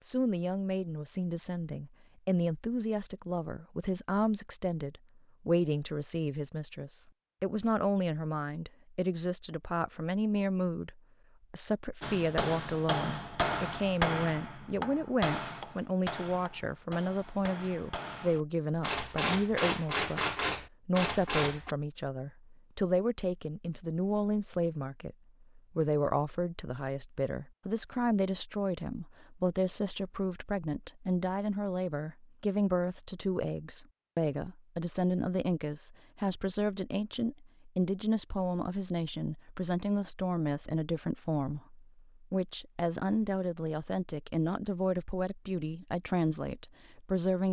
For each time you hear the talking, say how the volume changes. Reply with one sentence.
You can hear the talking from 0.0 to 47.4 s, at a steady volume.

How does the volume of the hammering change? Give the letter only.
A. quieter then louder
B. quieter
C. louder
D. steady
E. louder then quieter
A.